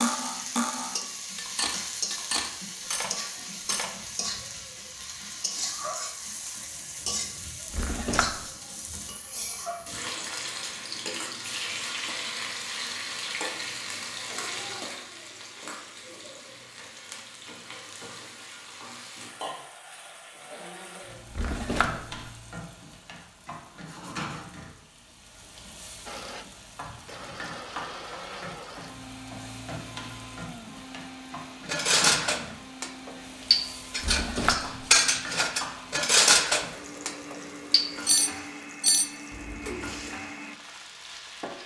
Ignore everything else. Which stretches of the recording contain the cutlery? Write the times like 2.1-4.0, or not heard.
0.0-3.9, 31.6-40.1.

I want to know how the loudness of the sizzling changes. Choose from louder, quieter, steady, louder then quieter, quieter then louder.
quieter.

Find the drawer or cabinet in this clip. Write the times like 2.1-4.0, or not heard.
7.7-8.3, 21.3-22.2, 34.0-34.9.